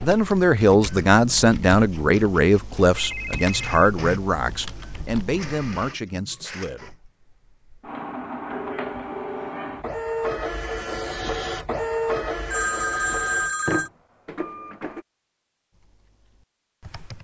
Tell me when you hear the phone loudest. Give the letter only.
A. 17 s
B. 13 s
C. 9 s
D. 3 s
B.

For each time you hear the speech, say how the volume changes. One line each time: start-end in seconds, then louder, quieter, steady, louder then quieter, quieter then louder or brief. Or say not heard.
0.0-6.9 quieter.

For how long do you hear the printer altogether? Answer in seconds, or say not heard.
15 s.